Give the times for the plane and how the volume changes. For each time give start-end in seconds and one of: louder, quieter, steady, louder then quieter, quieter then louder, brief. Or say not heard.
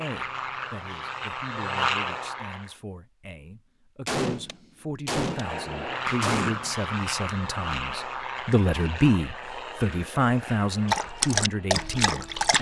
0.0-2.8 brief
5.2-12.5 quieter.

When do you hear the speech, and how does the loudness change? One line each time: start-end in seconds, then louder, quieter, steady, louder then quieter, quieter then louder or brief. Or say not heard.
0.0-12.5 louder.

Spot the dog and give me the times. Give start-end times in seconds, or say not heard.
10.8-12.5.